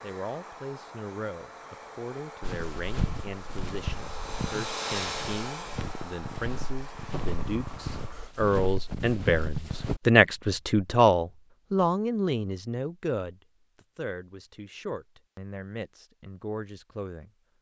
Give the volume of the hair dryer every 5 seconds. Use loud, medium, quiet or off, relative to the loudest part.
loud, loud, off, off.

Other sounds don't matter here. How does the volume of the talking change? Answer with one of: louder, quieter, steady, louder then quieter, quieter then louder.
louder then quieter.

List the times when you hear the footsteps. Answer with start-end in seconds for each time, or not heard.
2.4-10.0.